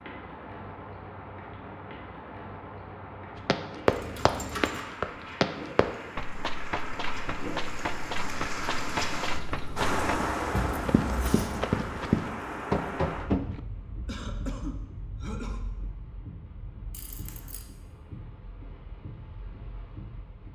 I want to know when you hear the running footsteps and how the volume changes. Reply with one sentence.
The running footsteps can be heard from 3.5 to 13.6 s, getting quieter then louder.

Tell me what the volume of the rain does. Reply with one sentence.
The volume of the rain goes up, then down.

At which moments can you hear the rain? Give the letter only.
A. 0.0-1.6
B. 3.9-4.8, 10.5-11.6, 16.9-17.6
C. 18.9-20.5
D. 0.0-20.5
D.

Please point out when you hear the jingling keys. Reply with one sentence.
The jingling keys can be heard from 3.9 to 4.8 s, from 10.5 to 11.6 s and from 16.9 to 17.6 s.